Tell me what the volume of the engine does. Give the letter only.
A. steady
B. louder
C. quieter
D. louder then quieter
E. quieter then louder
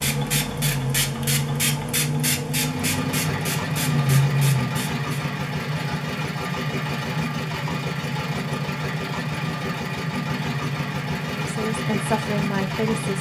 A.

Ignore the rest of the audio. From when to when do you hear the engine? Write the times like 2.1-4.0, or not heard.
2.5-13.1.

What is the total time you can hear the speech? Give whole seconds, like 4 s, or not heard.
2 s.